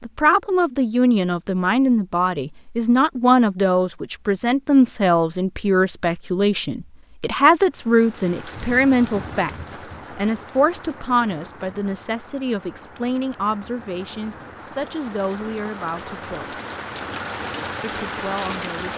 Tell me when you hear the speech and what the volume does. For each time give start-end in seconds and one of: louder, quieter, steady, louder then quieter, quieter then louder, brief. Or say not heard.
0.0-16.6 quieter
17.8-18.9 brief.